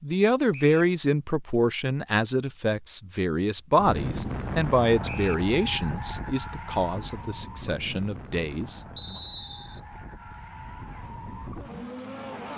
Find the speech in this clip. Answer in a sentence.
The speech can be heard from 0.0 to 9.2 s.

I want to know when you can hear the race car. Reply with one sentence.
The race car can be heard from 3.8 to 12.5 s.